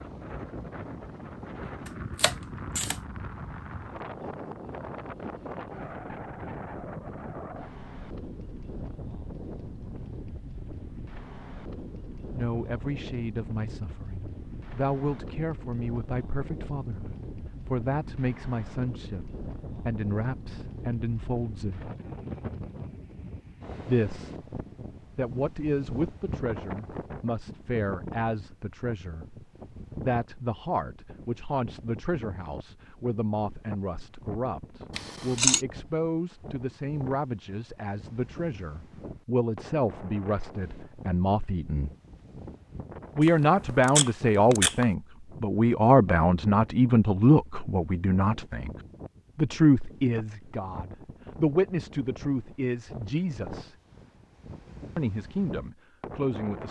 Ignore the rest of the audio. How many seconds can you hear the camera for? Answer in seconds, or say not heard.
3 s.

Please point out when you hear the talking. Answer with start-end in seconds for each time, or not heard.
12.3-21.9, 23.9-24.4, 25.1-41.9, 43.1-48.7, 49.4-53.8, 55.0-56.6.